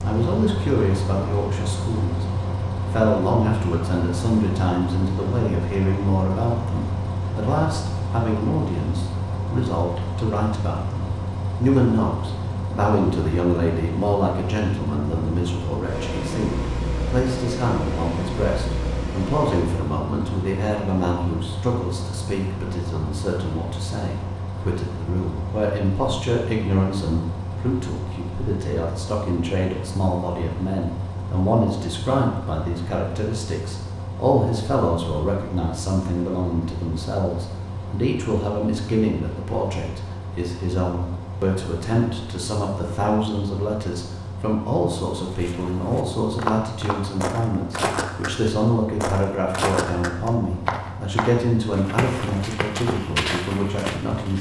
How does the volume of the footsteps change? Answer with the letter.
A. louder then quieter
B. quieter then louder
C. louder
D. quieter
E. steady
E.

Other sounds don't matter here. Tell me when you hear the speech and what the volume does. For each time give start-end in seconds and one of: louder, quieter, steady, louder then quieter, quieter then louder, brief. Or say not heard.
0.0-2.2 brief
2.9-54.3 steady.